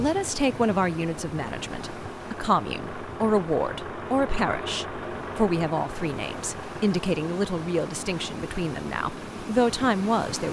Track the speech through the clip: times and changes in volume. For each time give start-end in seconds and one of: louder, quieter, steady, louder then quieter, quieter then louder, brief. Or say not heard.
0.0-10.4 steady.